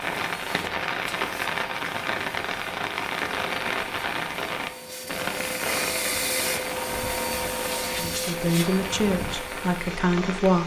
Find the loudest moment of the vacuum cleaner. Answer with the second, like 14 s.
6 s.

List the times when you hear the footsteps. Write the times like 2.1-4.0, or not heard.
not heard.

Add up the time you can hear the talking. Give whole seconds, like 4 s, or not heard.
3 s.